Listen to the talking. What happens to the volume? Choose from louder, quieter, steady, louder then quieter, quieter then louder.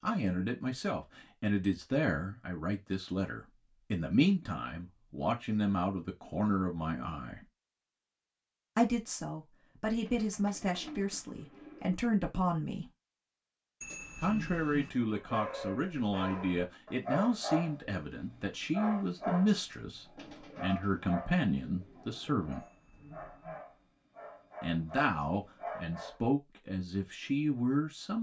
steady.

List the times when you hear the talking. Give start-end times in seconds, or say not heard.
0.0-7.4, 8.8-12.9, 14.2-22.6, 24.6-28.1.